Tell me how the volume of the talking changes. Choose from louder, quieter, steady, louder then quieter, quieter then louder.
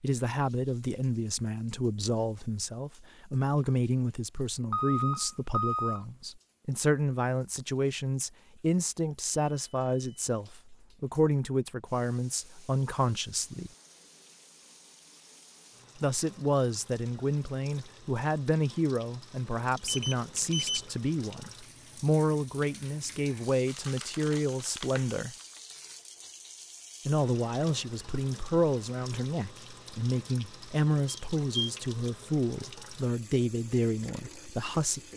steady.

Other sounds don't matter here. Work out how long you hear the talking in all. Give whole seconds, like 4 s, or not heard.
31 s.